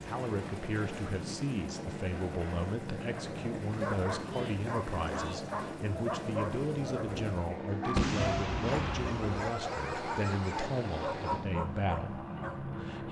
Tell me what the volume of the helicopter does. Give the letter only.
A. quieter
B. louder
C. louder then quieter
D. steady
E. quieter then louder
D.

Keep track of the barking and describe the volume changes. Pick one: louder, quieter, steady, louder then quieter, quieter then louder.
steady.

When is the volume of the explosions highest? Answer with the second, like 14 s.
8 s.